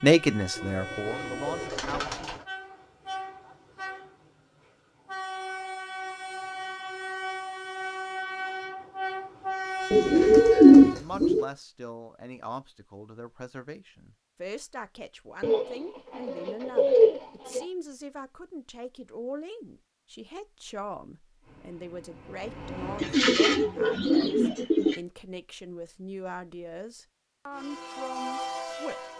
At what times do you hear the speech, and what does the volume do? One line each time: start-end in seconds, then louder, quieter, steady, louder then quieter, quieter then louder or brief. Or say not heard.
0.0-2.3 brief
10.9-29.1 steady.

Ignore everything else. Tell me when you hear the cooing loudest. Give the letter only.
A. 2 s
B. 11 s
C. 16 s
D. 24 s
B.